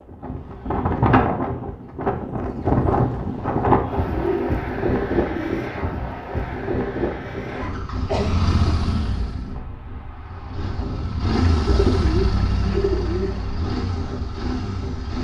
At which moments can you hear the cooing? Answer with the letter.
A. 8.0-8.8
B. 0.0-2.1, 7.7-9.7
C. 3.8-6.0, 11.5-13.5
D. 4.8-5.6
C.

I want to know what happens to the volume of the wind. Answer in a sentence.
The loudness of the wind goes down.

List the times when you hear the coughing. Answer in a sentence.
You can hear the coughing from 8.0 to 8.8 s.